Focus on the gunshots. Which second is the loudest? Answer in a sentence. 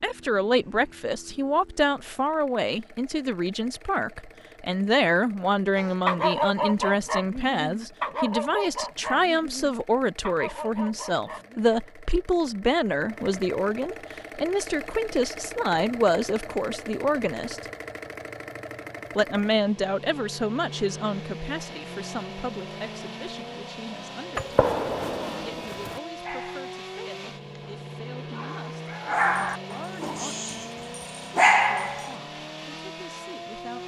The volume of the gunshots peaks at 25 seconds.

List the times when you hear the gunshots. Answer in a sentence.
The gunshots can be heard from 24.4 to 26.0 s.